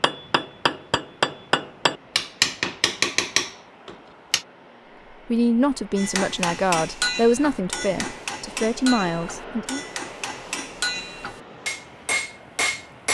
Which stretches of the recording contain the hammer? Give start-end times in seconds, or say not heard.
0.0-4.5, 6.0-13.0.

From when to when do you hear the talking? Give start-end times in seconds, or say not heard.
5.2-9.8.